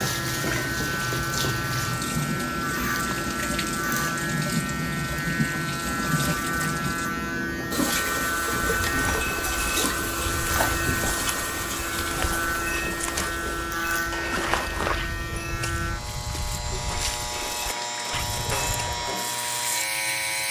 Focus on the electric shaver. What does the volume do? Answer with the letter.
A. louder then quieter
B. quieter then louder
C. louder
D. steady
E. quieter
D.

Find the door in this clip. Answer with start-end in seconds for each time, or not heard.
not heard.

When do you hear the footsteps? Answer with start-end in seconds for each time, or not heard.
8.8-19.1.